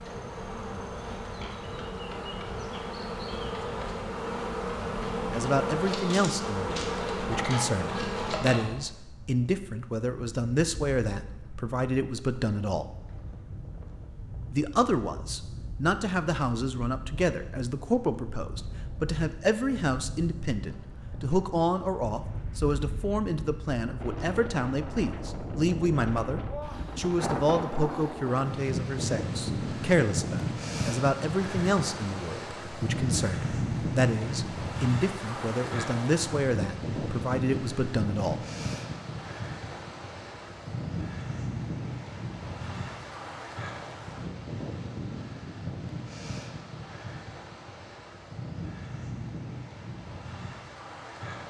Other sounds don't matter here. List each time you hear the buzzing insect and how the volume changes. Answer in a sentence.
You can hear the buzzing insect from 0.0 to 8.6 s, getting louder.